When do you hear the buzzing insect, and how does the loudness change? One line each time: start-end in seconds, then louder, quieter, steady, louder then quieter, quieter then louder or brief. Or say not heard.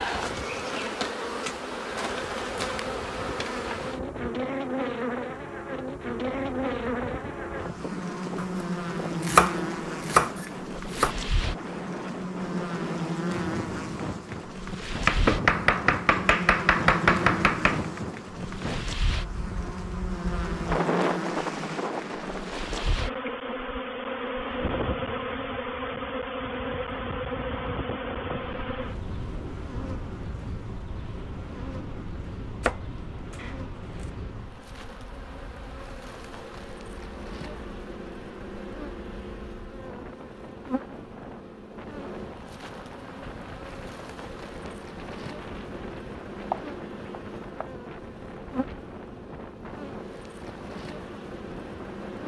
0.0-52.2 quieter.